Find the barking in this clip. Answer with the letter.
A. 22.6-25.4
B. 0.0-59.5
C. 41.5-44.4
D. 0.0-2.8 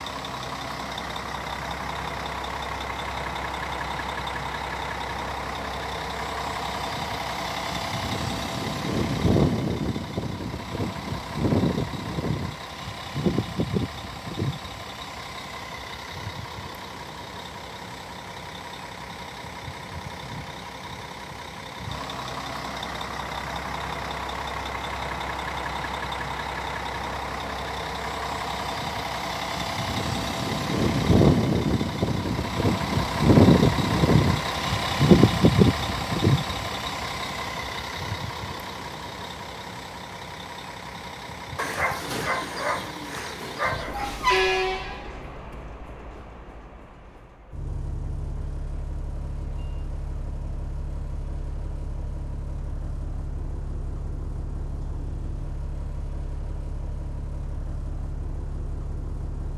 C.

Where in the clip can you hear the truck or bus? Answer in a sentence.
You can hear the truck or bus from 0.0 to 59.5 s.